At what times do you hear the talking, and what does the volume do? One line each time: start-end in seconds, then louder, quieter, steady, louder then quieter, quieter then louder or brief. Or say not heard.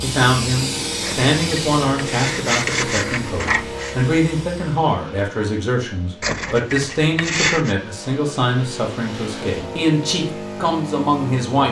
0.0-11.6 steady.